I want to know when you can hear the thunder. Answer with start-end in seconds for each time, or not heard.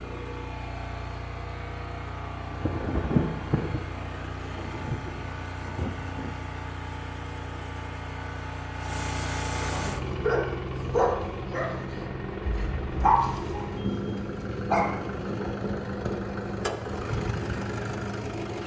2.5-6.4.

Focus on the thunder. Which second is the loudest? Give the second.
3 s.